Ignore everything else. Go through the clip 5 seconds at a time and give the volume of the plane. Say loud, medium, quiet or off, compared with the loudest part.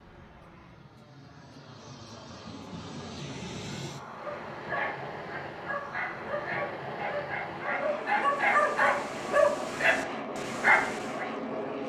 medium, loud, loud.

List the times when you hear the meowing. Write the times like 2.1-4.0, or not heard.
not heard.